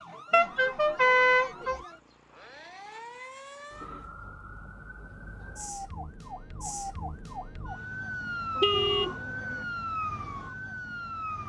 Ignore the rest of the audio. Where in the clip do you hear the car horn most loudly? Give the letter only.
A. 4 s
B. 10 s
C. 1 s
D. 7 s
C.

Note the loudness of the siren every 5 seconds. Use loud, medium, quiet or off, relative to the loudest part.
medium, loud, loud.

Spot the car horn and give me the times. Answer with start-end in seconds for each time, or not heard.
0.3-1.8, 8.6-9.6.